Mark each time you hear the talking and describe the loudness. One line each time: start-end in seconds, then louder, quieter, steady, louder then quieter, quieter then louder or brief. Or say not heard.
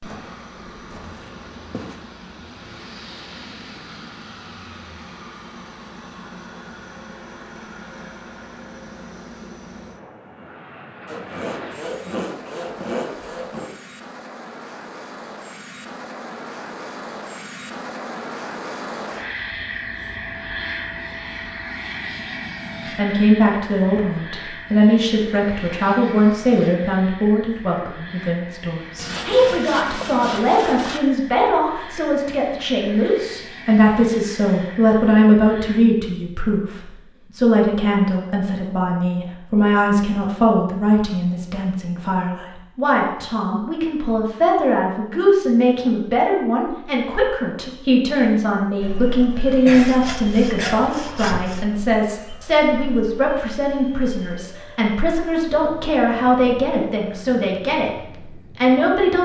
22.9-59.2 steady.